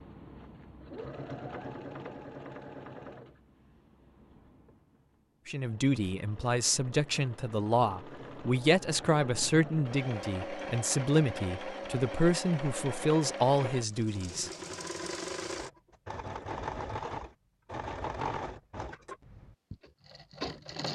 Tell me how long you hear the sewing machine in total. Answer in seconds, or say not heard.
21 s.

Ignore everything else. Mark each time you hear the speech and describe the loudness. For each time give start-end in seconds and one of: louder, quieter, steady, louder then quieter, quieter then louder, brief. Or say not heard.
5.5-14.5 steady.